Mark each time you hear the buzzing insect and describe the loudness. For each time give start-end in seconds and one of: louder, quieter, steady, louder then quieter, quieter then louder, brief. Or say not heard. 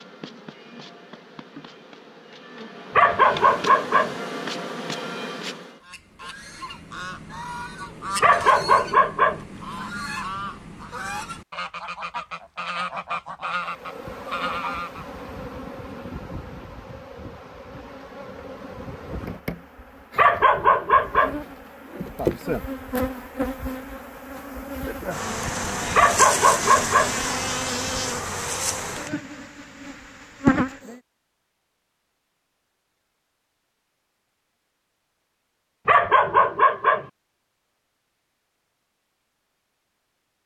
0.0-5.8 louder
13.6-31.0 louder.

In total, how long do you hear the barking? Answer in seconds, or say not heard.
6 s.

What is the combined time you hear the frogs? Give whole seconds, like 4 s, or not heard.
not heard.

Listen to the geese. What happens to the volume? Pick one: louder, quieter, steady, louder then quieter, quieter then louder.
louder.